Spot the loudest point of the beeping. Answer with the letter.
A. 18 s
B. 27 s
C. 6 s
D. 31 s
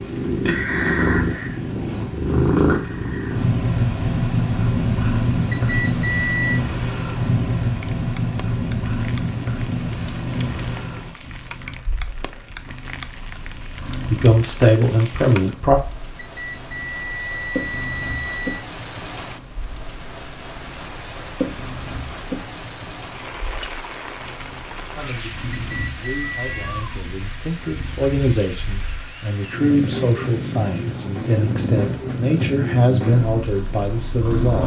C.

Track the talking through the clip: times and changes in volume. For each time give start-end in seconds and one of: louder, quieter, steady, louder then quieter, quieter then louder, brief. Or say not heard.
14.1-15.8 brief
24.9-34.6 louder.